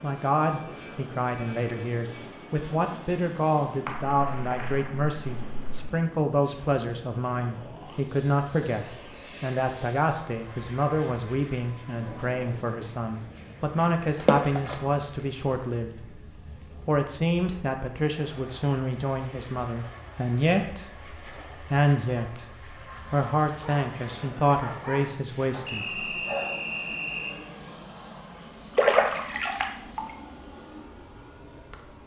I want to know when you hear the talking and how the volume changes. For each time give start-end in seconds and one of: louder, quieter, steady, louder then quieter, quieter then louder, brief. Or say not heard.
0.0-16.2 steady
16.9-26.1 steady.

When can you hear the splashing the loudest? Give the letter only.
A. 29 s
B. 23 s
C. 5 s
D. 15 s
A.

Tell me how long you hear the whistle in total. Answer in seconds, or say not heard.
2 s.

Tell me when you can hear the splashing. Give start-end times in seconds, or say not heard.
3.9-5.8, 14.2-14.8, 28.8-30.1.